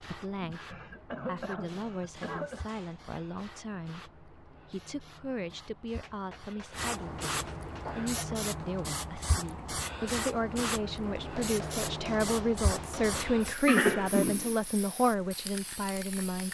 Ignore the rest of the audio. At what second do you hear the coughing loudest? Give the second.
14 s.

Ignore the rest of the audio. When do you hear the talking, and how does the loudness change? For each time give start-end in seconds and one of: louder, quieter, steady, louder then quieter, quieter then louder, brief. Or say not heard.
0.0-16.4 louder.